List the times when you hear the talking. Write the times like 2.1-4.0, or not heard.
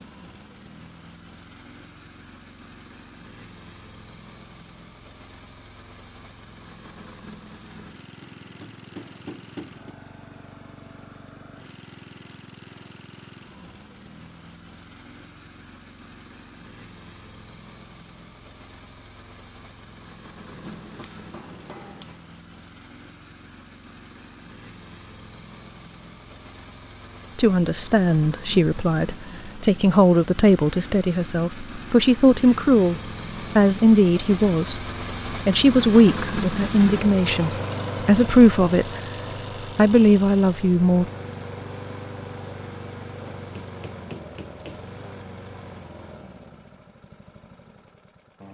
27.4-39.0, 39.8-41.0.